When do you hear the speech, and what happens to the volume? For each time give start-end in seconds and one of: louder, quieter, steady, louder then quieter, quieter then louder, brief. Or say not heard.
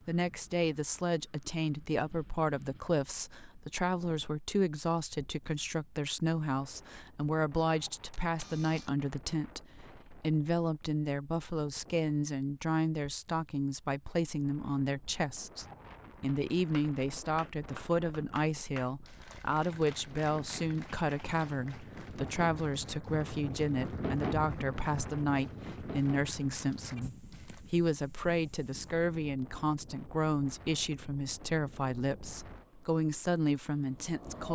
0.1-34.4 steady.